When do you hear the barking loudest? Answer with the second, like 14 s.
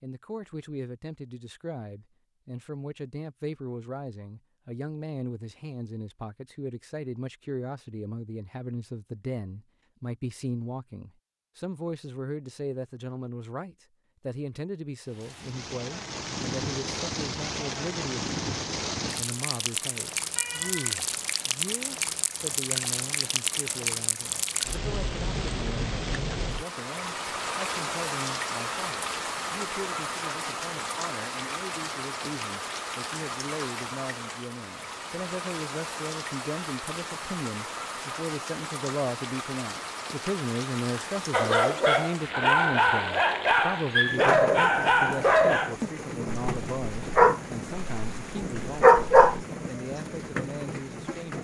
49 s.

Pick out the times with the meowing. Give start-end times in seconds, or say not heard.
20.4-20.9.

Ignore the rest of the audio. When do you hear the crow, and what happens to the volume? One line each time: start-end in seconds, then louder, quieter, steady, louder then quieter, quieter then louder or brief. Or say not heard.
not heard.